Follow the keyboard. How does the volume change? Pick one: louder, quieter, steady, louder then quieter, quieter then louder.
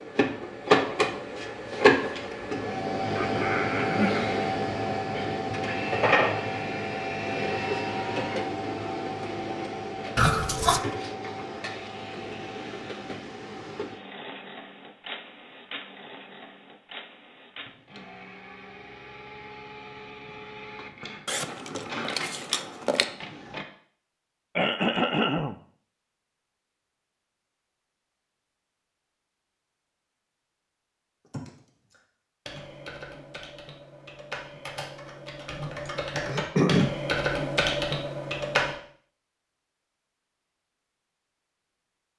louder.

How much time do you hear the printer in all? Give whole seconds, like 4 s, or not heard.
24 s.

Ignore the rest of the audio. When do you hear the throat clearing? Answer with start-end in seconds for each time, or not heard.
3.1-4.4, 24.6-25.6, 35.9-37.0.